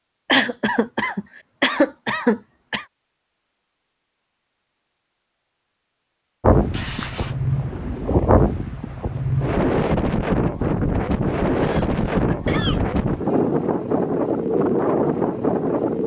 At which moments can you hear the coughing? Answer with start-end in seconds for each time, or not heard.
0.2-2.9, 6.7-7.3, 11.6-12.8.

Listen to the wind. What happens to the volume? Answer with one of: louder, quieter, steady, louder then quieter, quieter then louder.
steady.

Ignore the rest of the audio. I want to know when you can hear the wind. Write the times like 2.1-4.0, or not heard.
6.4-16.0.